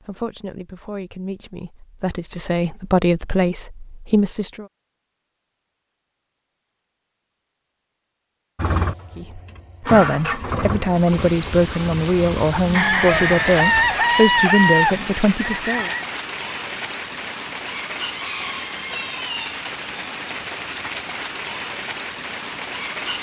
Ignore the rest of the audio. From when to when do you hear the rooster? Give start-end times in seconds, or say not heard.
12.7-16.1.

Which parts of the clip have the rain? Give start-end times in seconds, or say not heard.
10.8-23.1.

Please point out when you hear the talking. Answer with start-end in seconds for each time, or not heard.
0.1-4.7, 9.2-15.9.